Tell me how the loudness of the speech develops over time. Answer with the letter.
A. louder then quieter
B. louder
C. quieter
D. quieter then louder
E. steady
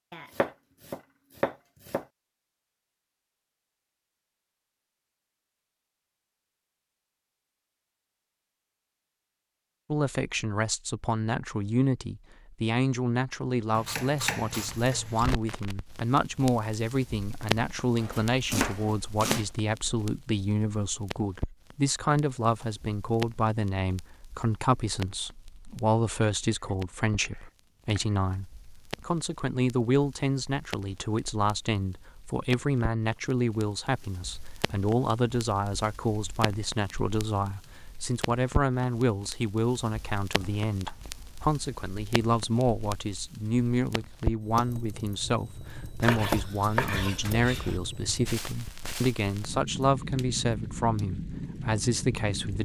E.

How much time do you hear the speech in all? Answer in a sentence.
The speech can be heard for 43 seconds in total.